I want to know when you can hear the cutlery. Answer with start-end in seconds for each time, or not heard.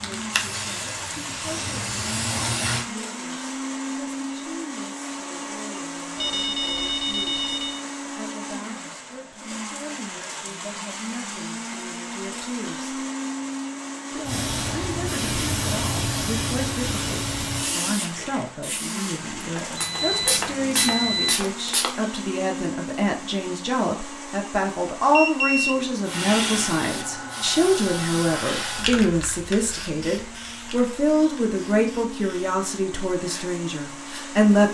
not heard.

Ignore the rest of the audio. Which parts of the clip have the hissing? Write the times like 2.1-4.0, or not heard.
0.0-2.9, 14.2-21.9, 26.1-34.4.